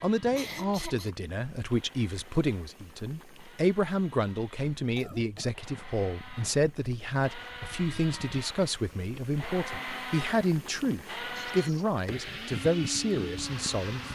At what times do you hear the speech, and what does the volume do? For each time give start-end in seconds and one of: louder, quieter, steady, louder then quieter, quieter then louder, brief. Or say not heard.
0.0-14.1 steady.